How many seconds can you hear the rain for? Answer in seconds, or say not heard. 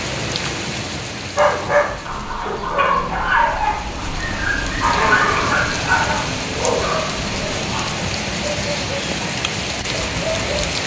11 s.